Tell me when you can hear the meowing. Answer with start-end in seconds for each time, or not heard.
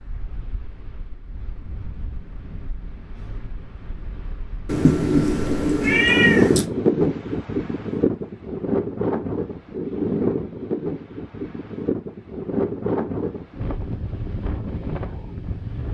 4.7-6.7.